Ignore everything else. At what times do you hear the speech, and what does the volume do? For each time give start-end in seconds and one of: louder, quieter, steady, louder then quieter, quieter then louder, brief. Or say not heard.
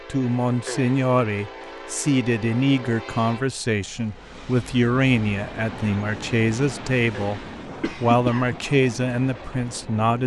0.1-10.2 steady.